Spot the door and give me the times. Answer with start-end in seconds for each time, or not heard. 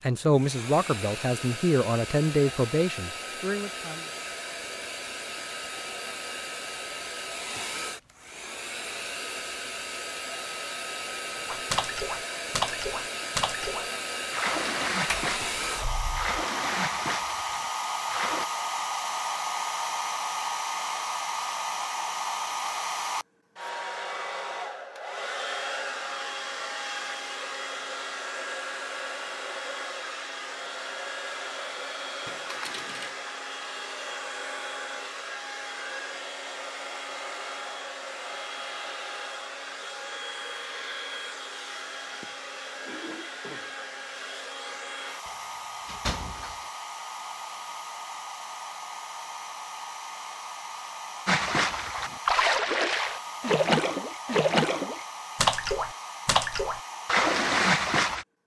15.1-16.4, 32.2-33.2, 45.2-46.6.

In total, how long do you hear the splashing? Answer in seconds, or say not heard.
14 s.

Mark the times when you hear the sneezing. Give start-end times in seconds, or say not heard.
not heard.